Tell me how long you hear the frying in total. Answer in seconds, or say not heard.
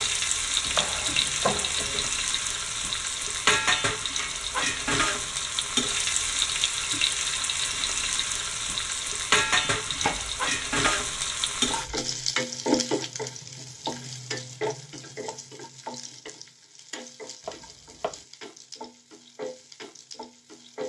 21 s.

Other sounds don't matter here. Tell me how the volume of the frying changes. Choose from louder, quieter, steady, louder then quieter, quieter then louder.
quieter.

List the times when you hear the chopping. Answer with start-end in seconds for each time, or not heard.
0.7-2.1, 9.7-11.9, 17.4-18.2.